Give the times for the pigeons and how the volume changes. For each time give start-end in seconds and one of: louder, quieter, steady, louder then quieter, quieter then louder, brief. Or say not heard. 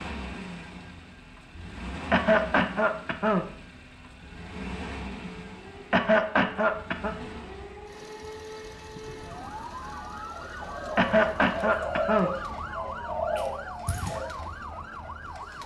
9.0-14.2 louder.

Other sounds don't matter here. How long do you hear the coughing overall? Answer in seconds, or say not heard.
4 s.